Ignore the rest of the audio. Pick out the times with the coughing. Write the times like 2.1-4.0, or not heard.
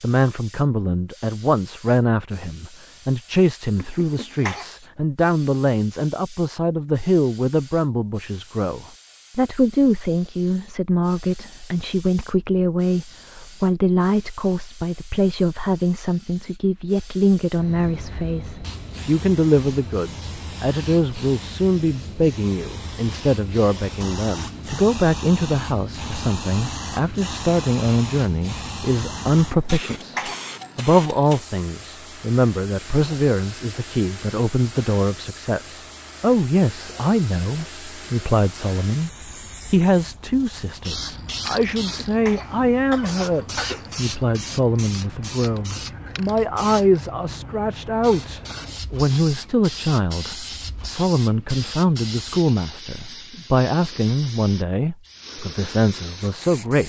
3.8-4.7, 29.5-30.4, 41.6-44.0.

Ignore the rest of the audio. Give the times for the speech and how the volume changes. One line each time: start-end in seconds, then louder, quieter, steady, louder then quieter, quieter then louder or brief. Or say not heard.
0.0-56.8 steady.